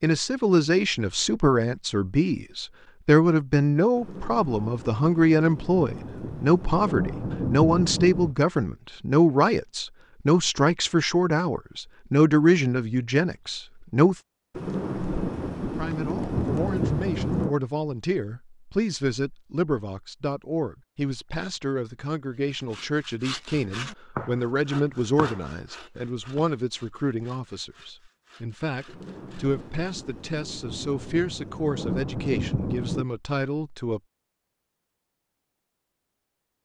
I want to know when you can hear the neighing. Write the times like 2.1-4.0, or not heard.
not heard.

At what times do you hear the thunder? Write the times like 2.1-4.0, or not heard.
4.0-8.3, 14.5-17.6, 28.9-33.0.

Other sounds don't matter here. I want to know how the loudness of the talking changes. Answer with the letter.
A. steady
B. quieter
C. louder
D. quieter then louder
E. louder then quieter
B.